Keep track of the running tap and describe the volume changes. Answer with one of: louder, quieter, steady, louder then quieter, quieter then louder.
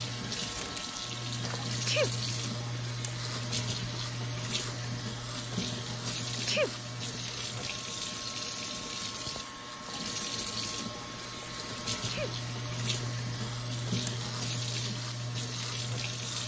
steady.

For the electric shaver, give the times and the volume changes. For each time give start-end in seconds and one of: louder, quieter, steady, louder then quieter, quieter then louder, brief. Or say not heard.
0.0-16.4 quieter then louder.